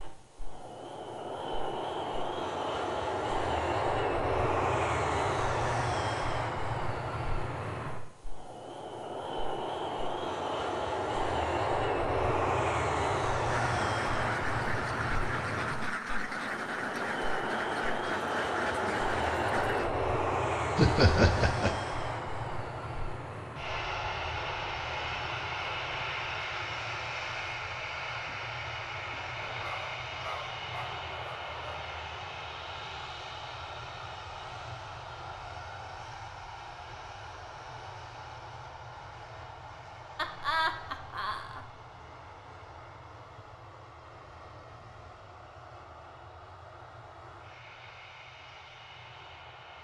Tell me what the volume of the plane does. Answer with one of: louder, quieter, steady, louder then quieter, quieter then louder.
quieter.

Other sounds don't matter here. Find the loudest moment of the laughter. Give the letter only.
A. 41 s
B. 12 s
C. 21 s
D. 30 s
C.